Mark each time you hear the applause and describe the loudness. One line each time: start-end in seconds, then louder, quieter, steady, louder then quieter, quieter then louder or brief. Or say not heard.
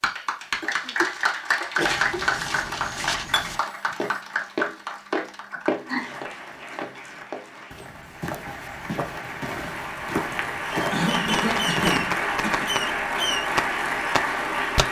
0.0-14.8 quieter then louder.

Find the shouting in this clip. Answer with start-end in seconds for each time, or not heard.
not heard.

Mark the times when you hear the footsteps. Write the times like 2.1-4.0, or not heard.
1.8-12.1.